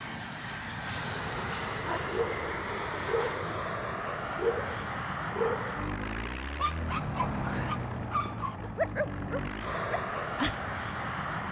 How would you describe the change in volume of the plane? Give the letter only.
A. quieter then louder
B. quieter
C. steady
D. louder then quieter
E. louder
C.